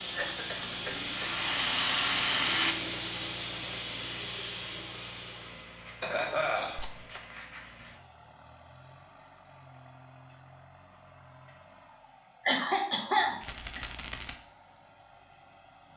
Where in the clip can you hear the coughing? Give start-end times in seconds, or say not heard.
0.1-1.4, 5.8-7.9, 12.4-13.8.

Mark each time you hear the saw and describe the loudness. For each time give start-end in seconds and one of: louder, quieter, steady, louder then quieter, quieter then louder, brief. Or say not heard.
not heard.